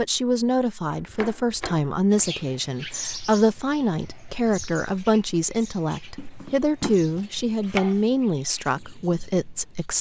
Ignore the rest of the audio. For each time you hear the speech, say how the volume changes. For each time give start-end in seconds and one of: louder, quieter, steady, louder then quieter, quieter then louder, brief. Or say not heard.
0.0-9.9 steady.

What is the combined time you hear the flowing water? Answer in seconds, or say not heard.
not heard.